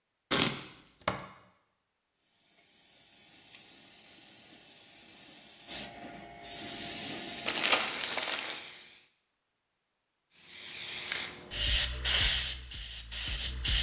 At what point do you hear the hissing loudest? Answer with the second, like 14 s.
12 s.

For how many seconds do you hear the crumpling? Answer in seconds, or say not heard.
2 s.